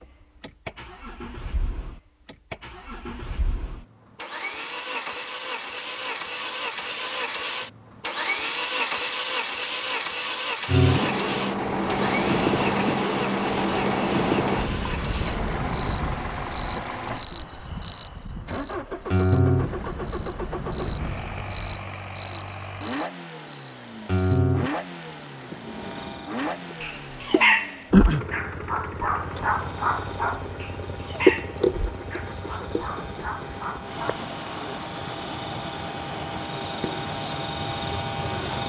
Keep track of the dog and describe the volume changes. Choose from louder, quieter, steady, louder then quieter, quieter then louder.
quieter.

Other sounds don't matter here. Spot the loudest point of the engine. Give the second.
9 s.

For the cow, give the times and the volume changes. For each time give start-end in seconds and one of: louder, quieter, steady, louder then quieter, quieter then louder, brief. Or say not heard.
not heard.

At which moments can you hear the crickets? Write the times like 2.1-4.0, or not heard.
10.7-38.6.